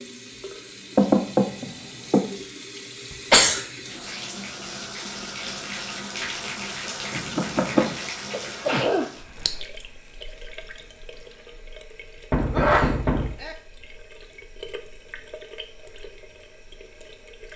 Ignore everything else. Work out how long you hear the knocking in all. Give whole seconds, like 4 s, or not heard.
3 s.